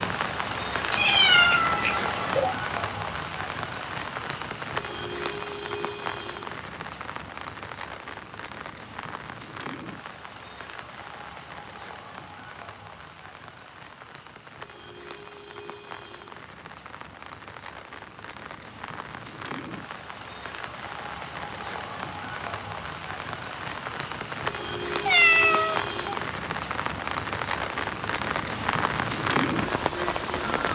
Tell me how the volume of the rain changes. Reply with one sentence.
The loudness of the rain goes down, then up.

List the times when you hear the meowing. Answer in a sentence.
You can hear the meowing from 0.9 to 2.5 s and from 25.1 to 26.1 s.